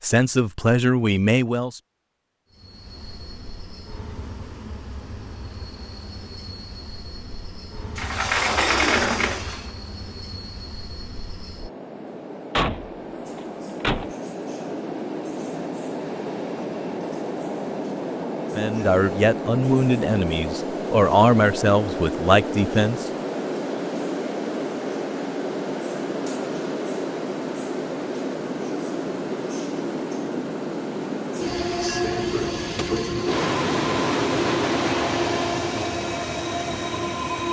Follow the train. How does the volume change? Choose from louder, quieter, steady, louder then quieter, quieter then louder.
louder.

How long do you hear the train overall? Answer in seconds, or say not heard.
35 s.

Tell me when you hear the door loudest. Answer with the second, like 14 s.
9 s.